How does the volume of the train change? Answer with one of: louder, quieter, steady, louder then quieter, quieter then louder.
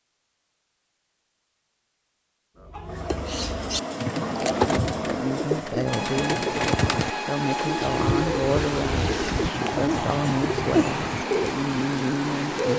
steady.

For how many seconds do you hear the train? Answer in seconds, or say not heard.
10 s.